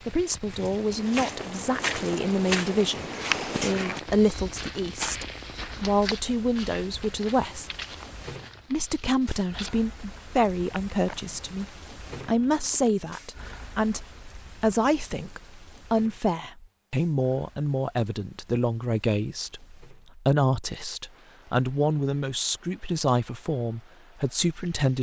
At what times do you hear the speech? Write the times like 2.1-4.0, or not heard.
0.1-7.7, 8.7-24.9.